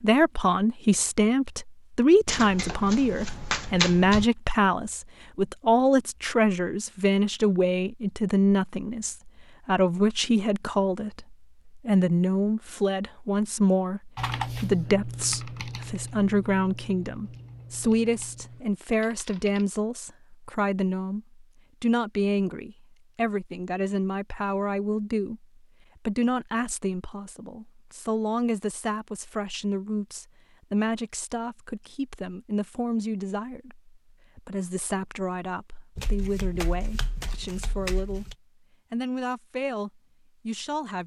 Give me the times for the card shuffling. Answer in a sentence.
The card shuffling can be heard from 2.2 to 4.2 s and from 36.0 to 38.4 s.